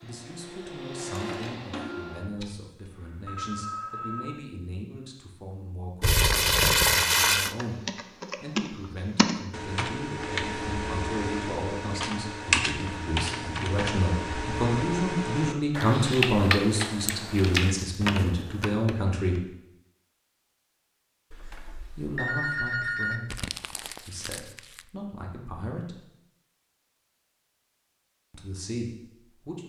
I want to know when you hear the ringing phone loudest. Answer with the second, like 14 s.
23 s.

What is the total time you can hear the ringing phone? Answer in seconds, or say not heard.
4 s.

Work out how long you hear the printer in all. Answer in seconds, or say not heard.
2 s.